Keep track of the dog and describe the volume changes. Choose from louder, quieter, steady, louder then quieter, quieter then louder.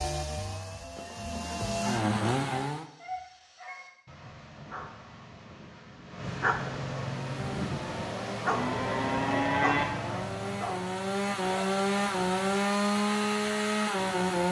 louder then quieter.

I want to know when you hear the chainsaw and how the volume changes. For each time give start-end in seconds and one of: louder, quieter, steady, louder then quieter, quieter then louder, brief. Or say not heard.
0.0-2.9 brief
7.2-14.4 louder.